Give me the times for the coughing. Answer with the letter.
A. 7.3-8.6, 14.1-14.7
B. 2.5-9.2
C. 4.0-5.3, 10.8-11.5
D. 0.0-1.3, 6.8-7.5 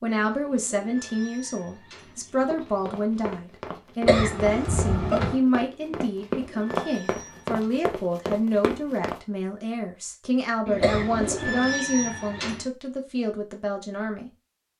C.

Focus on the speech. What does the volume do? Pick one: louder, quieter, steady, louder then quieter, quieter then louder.
steady.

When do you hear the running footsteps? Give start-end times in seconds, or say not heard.
2.5-9.2.